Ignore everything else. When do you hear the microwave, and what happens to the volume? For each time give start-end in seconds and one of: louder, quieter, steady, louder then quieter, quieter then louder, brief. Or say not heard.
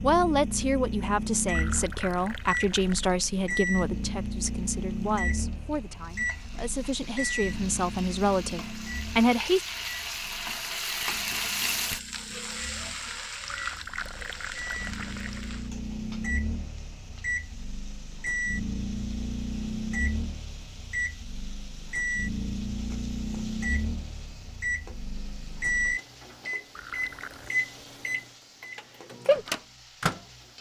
0.0-30.2 quieter then louder.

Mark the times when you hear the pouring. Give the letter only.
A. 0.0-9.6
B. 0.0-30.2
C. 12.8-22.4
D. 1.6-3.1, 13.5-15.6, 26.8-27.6
D.